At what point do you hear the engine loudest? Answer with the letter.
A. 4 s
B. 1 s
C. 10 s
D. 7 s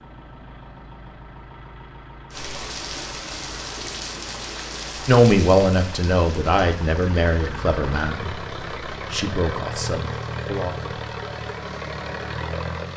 C.